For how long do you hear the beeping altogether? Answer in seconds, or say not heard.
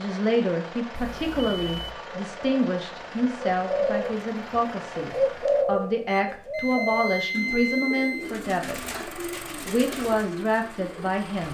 3 s.